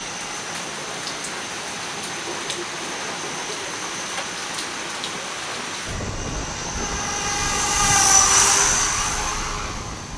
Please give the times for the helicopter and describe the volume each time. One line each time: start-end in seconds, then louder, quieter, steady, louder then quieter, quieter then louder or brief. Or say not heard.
0.0-10.1 louder.